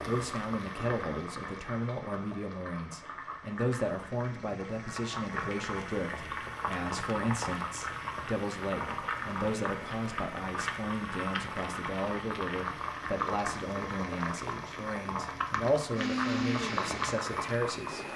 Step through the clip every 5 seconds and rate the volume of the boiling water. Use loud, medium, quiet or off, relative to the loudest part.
medium, loud, loud, loud.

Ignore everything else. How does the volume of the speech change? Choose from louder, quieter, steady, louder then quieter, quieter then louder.
steady.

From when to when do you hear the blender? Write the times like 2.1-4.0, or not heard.
15.9-18.1.